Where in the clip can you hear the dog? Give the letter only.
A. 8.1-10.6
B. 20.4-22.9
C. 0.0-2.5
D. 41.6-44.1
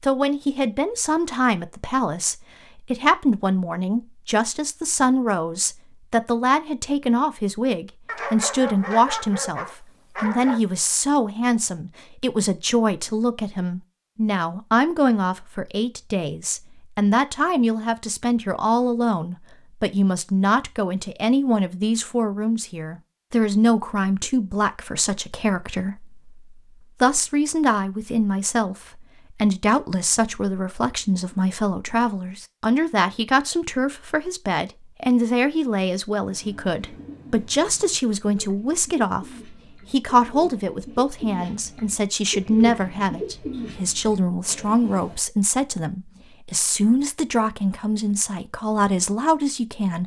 A.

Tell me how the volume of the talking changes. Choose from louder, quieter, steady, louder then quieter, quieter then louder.
steady.